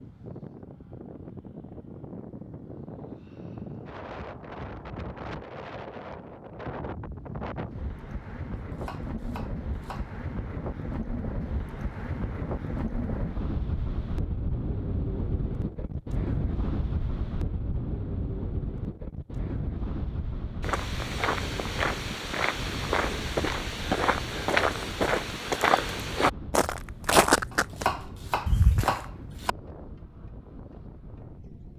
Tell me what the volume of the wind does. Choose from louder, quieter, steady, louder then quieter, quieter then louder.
louder then quieter.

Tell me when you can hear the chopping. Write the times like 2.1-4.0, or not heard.
8.6-10.2, 27.5-29.5.